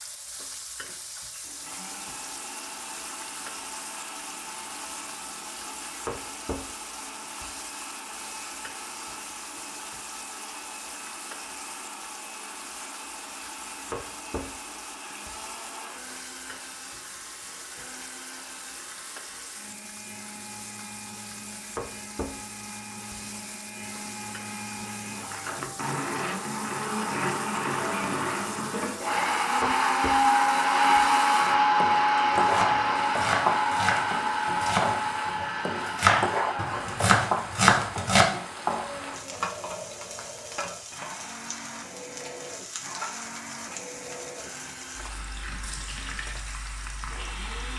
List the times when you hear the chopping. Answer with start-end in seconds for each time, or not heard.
32.4-38.2.